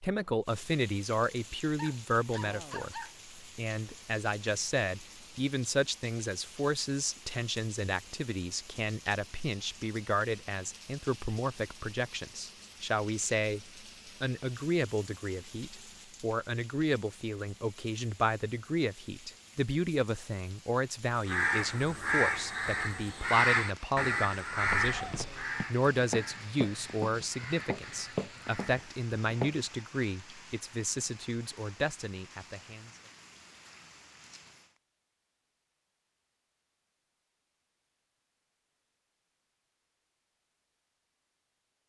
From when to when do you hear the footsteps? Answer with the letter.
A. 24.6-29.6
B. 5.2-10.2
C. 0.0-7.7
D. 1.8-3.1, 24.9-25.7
A.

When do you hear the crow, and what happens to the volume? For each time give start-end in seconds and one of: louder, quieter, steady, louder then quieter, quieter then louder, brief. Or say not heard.
21.1-28.8 quieter.